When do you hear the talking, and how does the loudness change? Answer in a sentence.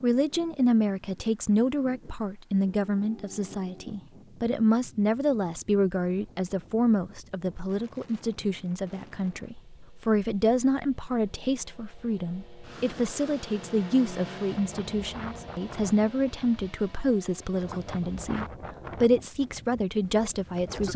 You can hear the talking from 0.0 to 20.9 s, at a steady volume.